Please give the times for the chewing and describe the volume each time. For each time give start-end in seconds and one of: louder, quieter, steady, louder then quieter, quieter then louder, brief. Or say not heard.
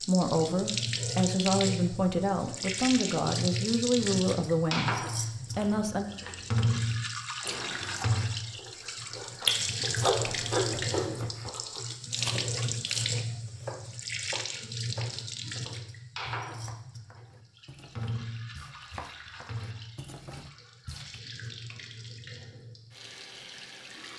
5.3-13.1 louder then quieter.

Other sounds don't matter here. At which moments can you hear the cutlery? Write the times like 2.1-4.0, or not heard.
not heard.